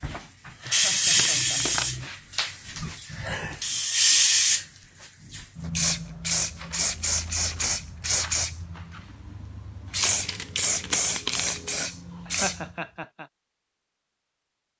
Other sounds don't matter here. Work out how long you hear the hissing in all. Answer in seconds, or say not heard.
13 s.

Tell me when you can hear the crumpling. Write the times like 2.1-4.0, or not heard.
0.7-1.9, 6.5-7.8, 10.0-11.9.